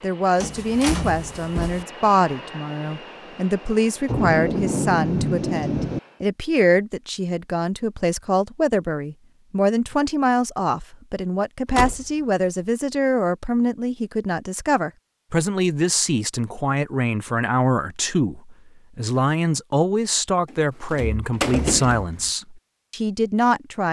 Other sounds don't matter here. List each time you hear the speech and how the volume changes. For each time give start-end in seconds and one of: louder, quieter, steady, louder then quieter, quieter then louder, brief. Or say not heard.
0.0-23.8 steady.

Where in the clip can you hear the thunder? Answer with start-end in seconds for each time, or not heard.
4.0-6.0.